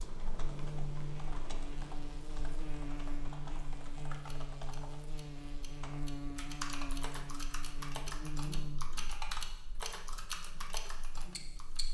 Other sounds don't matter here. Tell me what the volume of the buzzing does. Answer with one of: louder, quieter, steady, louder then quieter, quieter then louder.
quieter.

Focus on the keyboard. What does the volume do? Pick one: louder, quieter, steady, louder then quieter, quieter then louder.
louder.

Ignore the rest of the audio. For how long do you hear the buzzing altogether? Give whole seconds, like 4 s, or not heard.
12 s.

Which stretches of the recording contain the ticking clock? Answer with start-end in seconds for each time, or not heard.
0.0-11.8.